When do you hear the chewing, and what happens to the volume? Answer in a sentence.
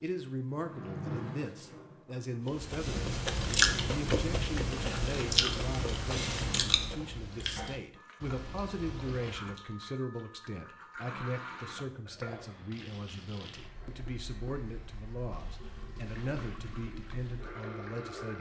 The chewing can be heard from 2.5 to 9.6 s, getting quieter.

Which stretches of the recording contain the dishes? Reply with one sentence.
The dishes can't be heard in this clip.